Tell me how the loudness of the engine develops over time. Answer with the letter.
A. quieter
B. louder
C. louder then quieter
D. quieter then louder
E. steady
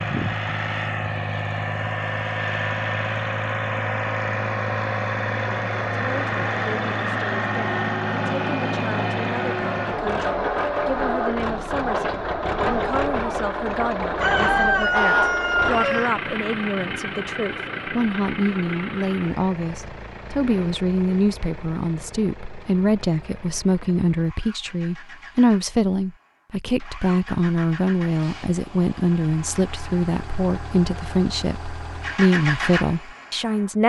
D.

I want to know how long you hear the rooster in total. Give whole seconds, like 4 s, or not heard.
2 s.